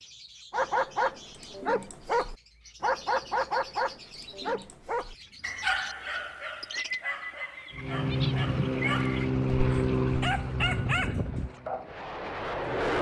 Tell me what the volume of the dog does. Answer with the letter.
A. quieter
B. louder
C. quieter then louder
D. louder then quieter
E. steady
C.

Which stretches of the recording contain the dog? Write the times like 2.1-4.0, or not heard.
0.5-12.3.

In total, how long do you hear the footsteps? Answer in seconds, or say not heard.
not heard.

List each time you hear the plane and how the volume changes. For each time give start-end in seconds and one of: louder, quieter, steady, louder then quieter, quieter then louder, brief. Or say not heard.
7.8-12.9 quieter.